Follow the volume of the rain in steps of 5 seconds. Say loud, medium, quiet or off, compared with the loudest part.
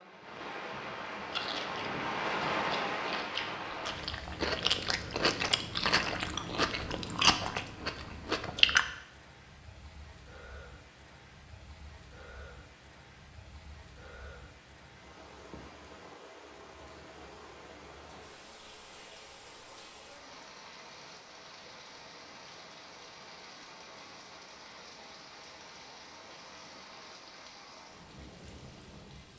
loud, quiet, quiet, quiet, quiet, quiet.